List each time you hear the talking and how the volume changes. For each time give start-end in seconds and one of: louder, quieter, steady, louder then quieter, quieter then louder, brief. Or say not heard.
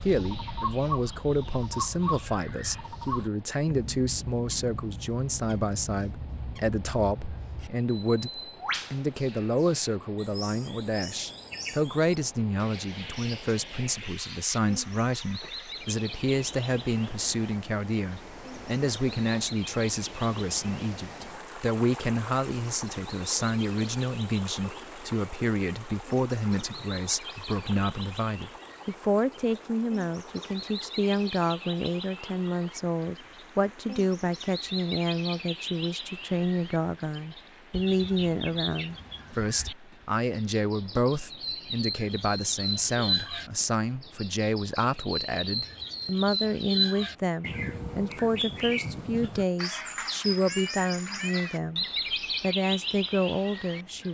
0.0-54.1 steady.